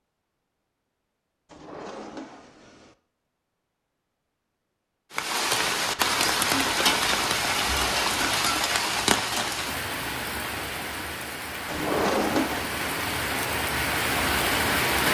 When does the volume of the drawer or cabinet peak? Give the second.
12 s.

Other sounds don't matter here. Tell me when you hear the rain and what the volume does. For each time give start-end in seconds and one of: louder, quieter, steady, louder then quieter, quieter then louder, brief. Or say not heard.
5.1-15.0 quieter then louder.